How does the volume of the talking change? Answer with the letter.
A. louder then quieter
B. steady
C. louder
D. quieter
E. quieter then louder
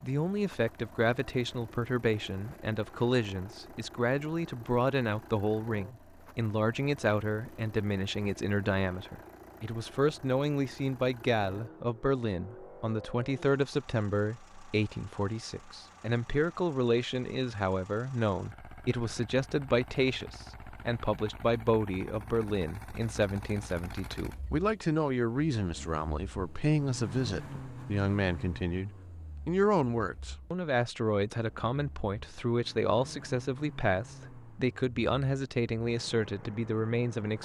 B.